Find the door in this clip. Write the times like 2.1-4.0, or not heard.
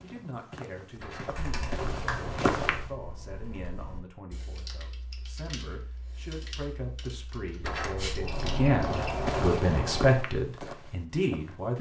0.9-2.9, 7.6-10.1.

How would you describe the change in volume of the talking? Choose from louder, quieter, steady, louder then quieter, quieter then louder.
louder.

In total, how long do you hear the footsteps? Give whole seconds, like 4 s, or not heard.
6 s.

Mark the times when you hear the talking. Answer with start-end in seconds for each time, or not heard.
0.0-11.7.